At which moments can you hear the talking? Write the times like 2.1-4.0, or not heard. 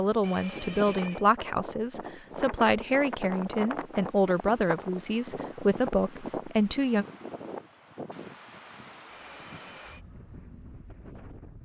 0.0-7.0.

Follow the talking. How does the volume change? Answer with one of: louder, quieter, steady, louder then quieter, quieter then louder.
steady.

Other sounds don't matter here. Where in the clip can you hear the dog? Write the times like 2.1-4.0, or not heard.
not heard.